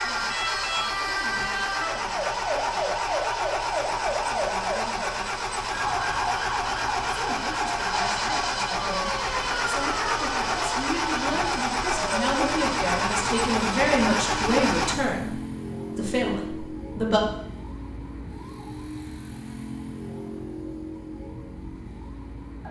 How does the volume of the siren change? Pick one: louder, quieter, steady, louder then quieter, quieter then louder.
quieter.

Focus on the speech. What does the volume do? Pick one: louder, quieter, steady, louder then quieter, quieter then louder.
louder.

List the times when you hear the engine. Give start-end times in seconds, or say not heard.
0.0-14.9.